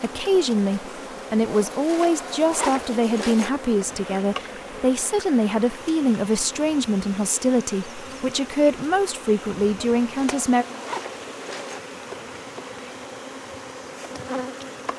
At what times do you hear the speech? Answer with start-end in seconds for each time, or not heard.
0.0-10.7.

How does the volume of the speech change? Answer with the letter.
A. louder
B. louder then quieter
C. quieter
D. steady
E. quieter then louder
D.